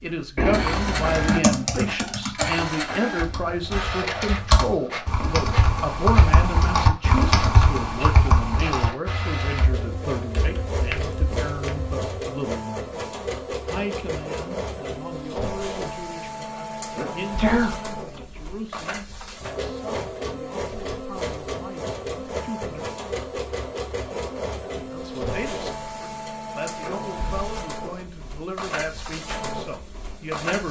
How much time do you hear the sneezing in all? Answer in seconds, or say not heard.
2 s.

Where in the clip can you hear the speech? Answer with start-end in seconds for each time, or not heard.
0.0-12.8, 13.7-22.9, 24.6-30.6.